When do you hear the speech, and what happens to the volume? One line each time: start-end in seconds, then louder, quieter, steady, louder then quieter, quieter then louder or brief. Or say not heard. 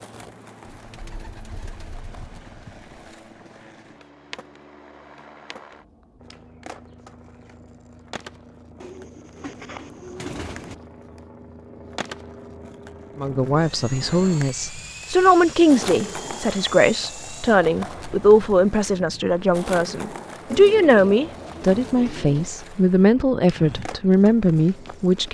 13.2-25.2 steady.